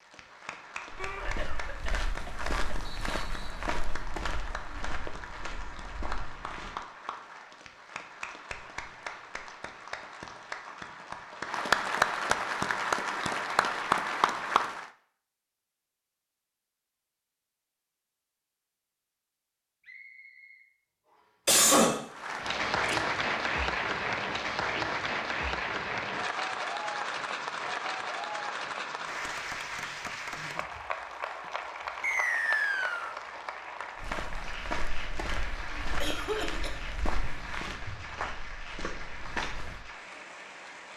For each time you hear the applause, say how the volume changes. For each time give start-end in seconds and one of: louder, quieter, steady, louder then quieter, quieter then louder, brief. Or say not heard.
0.0-14.9 louder
22.1-40.9 quieter.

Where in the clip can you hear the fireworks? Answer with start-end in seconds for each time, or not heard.
not heard.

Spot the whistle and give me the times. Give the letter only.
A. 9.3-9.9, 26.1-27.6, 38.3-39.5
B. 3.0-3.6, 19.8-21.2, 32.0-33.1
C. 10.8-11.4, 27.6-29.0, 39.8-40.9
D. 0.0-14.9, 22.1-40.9
B.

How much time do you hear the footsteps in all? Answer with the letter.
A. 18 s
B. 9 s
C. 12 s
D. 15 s
C.